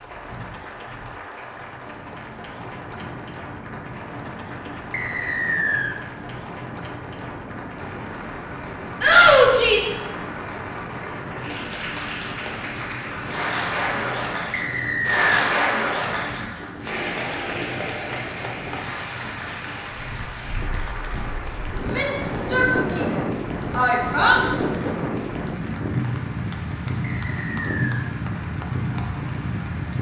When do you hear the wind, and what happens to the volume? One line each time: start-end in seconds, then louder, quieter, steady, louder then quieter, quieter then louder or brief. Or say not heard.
0.0-29.9 louder.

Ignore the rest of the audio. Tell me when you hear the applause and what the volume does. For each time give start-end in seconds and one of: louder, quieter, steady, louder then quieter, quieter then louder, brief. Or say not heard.
0.0-29.9 louder then quieter.